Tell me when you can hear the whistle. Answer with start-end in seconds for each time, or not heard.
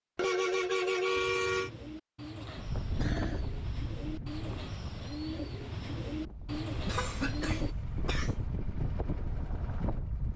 not heard.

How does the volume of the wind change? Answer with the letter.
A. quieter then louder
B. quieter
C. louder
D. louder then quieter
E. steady
A.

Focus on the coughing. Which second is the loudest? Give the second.
7 s.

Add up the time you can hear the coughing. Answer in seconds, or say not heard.
3 s.